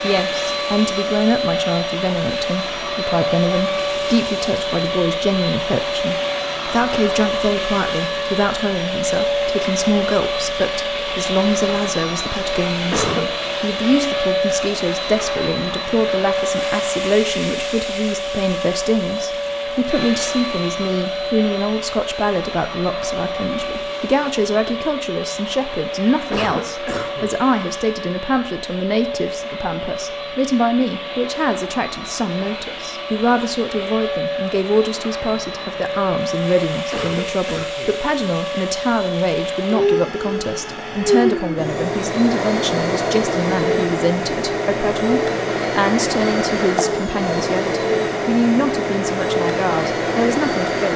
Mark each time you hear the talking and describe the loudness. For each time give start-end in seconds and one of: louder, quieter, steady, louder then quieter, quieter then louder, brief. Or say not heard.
0.0-50.9 steady.